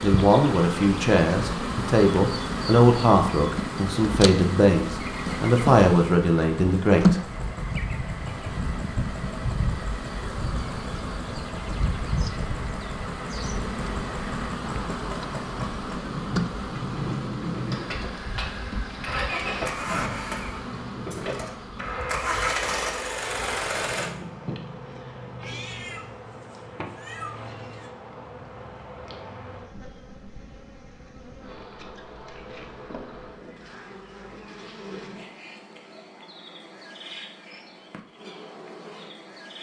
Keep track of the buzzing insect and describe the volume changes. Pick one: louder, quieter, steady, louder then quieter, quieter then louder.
quieter.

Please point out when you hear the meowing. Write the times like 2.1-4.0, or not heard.
25.4-27.9.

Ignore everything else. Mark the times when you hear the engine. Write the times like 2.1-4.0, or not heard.
0.0-24.1.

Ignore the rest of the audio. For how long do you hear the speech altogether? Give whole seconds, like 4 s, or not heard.
7 s.